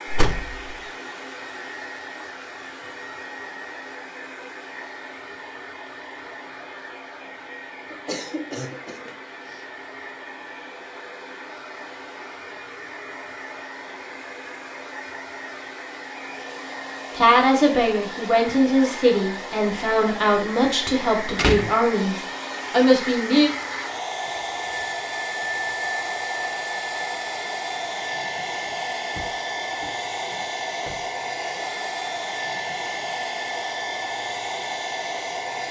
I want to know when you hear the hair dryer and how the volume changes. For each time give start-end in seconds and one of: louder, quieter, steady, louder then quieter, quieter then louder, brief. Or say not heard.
0.0-35.6 louder.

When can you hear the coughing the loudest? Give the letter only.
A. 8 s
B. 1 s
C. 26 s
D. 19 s
A.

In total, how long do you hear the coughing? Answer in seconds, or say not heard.
2 s.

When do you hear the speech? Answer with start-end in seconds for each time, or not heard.
17.1-23.5.